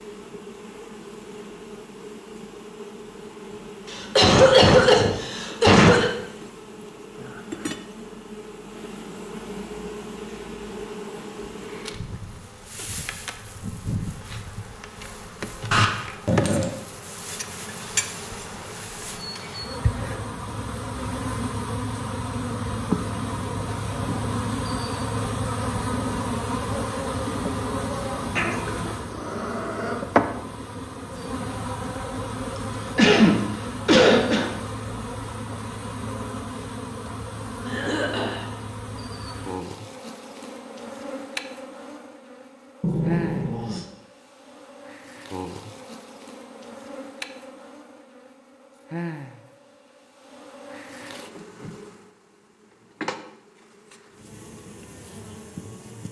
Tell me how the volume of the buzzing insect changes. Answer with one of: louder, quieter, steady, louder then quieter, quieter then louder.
louder then quieter.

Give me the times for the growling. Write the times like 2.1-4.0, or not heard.
15.7-16.7, 28.4-30.1, 42.8-43.9.